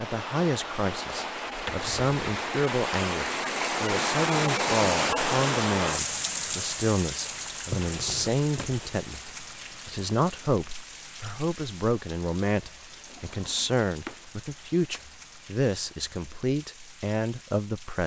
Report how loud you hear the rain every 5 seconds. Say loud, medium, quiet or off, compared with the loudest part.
loud, loud, quiet, quiet.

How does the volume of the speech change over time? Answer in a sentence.
The volume of the speech stays about the same.